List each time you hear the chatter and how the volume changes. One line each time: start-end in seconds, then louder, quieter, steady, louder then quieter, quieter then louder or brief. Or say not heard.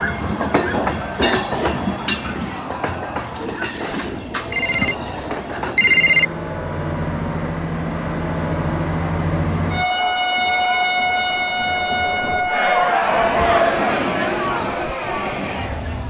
0.0-16.0 louder.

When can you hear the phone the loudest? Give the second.
6 s.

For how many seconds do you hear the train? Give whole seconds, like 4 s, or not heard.
16 s.